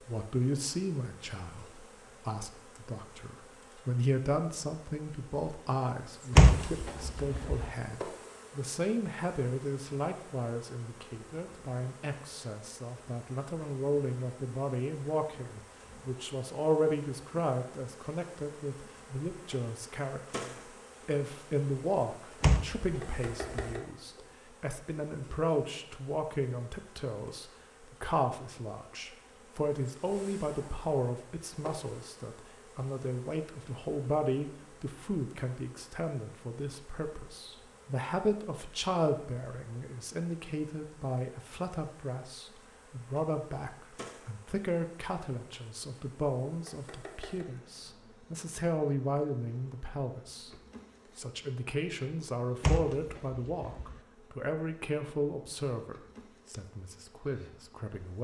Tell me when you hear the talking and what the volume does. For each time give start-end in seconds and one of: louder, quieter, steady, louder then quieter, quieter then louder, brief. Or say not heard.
0.0-58.1 steady.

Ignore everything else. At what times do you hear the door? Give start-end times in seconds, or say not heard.
6.3-7.7, 22.4-23.8, 52.6-54.0.